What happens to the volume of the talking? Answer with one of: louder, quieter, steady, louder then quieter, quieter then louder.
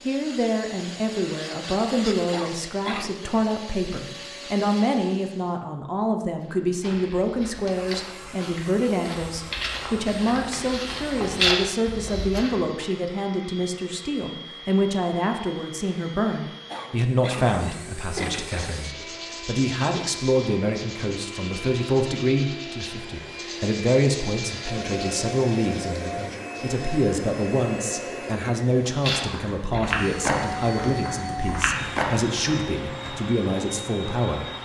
steady.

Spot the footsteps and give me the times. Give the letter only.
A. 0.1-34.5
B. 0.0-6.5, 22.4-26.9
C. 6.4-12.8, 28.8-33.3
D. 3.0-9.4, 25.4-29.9
C.